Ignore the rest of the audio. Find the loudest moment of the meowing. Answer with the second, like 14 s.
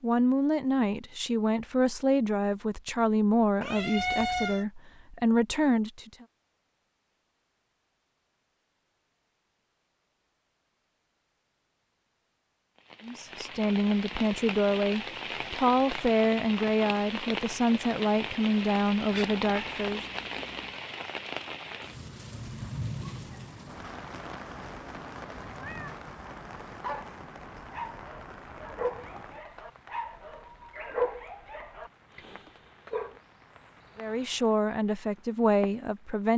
4 s.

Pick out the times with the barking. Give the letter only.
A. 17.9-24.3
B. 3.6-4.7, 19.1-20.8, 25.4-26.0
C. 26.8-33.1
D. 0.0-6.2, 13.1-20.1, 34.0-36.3
C.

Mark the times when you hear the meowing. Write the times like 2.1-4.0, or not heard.
3.6-4.7, 19.1-20.8, 25.4-26.0.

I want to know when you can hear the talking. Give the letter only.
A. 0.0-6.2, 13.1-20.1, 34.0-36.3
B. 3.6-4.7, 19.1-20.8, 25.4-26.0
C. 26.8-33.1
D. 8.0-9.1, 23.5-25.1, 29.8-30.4
A.